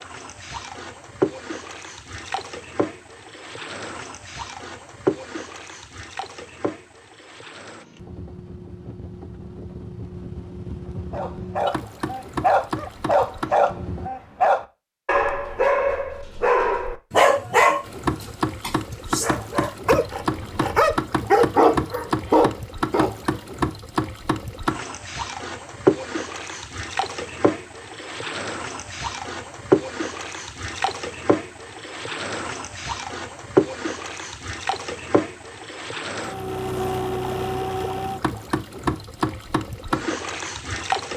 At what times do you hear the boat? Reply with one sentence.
The boat can be heard from 0.0 to 14.1 s and from 17.9 to 41.1 s.